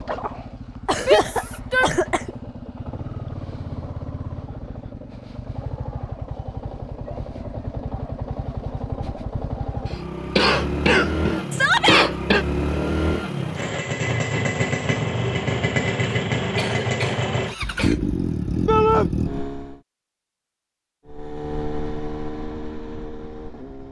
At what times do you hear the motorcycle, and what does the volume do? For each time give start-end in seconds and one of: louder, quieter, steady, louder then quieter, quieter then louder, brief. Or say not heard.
0.0-19.8 louder
21.1-23.8 brief.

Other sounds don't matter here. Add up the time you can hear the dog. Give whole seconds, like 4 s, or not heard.
not heard.